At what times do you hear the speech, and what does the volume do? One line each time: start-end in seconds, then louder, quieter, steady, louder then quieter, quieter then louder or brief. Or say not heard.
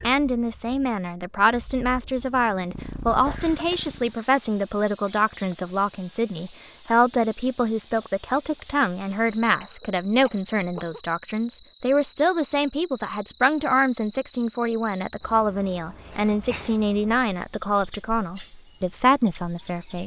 0.0-20.0 steady.